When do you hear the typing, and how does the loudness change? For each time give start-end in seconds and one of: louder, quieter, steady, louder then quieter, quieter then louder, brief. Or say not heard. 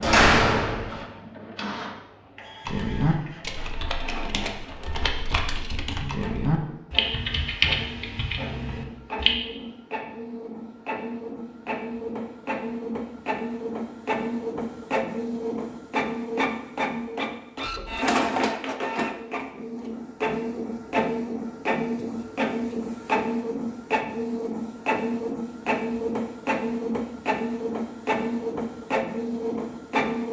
2.6-9.3 louder then quieter.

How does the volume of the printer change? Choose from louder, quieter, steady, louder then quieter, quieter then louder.
louder.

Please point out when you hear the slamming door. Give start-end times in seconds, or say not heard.
0.0-0.9.